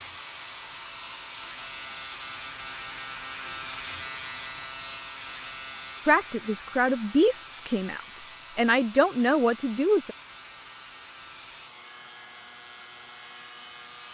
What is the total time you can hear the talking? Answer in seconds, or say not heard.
4 s.